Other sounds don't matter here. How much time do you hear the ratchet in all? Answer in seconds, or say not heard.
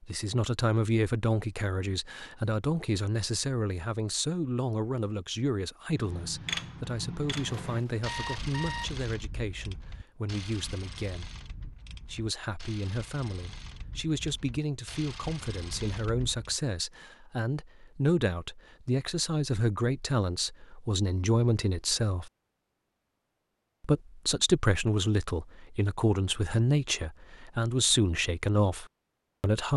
11 s.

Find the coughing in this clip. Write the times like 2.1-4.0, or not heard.
not heard.